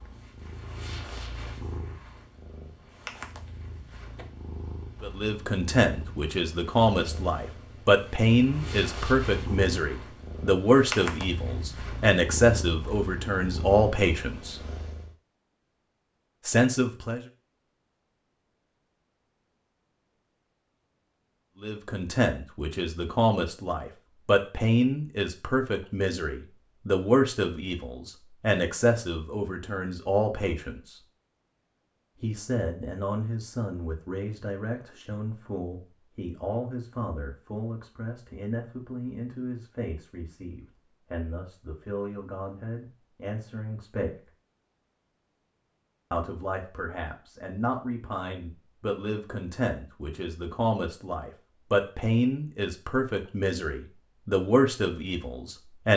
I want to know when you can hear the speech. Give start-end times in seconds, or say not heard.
5.0-14.6, 16.4-17.2, 21.6-31.0, 32.2-44.3, 46.1-55.9.